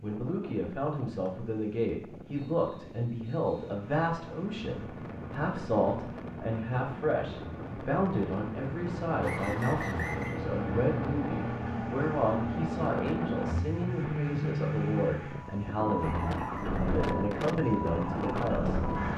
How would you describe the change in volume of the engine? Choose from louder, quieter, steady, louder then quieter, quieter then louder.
louder.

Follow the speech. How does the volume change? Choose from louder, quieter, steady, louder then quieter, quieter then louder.
steady.